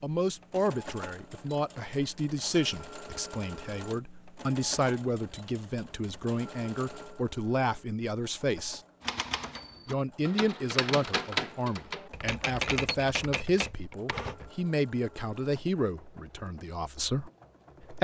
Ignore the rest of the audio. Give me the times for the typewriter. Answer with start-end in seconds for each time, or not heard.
9.0-14.5.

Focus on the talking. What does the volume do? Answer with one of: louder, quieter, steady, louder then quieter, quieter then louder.
steady.